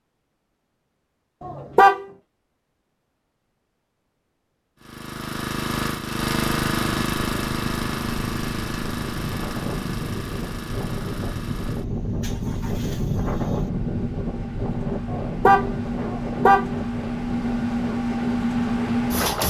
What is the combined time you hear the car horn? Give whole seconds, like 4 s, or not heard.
2 s.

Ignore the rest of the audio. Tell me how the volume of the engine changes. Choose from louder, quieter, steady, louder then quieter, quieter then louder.
quieter then louder.